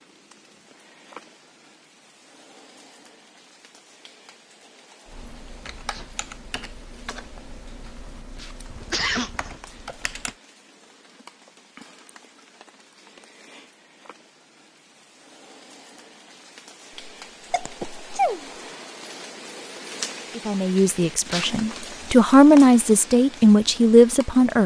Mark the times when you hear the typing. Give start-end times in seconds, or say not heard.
5.0-10.3.